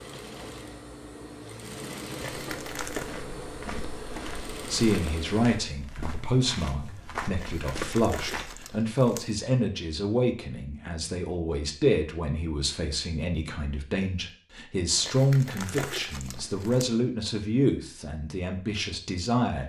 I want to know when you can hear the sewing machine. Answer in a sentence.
The sewing machine can be heard from 0.0 to 5.5 s.